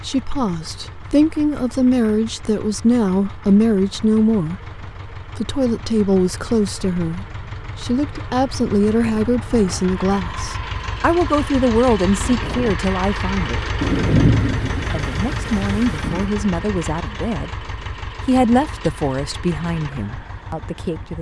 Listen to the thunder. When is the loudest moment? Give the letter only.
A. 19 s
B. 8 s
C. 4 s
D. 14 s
D.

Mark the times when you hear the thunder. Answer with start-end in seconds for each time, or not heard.
13.8-16.2.